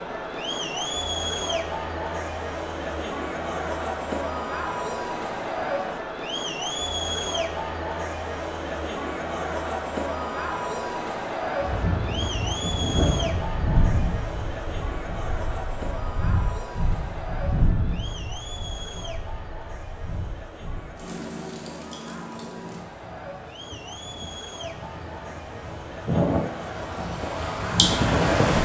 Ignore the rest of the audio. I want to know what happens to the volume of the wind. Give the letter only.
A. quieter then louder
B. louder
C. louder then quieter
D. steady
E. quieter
A.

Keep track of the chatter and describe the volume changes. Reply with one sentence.
The loudness of the chatter goes down.